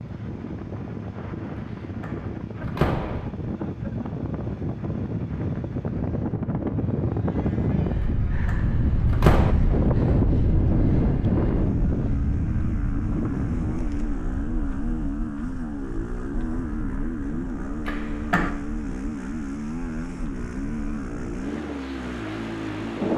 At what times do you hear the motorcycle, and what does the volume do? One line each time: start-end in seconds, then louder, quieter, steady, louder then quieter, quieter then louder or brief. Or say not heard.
0.0-23.1 louder.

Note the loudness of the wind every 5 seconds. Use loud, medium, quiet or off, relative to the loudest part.
medium, loud, loud, quiet, medium.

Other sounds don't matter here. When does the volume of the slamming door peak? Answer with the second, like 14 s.
9 s.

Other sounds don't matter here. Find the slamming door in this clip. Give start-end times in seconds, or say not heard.
2.0-3.3, 8.4-9.6, 17.9-18.6.